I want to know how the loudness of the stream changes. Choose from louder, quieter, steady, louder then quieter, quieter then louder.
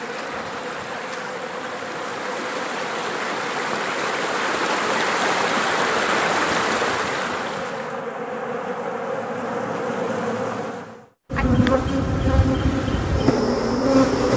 louder.